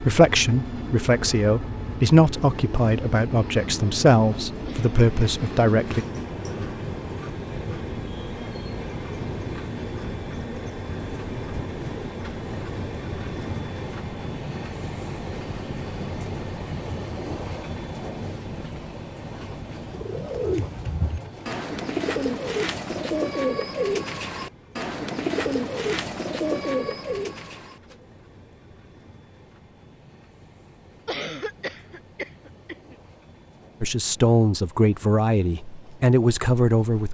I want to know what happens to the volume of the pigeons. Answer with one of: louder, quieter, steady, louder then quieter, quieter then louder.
steady.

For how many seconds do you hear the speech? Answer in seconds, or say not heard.
9 s.